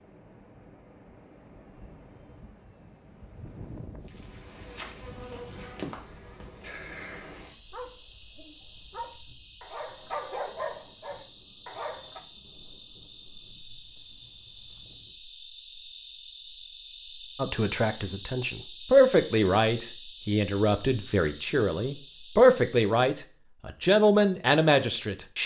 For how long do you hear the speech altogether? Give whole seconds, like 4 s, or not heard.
8 s.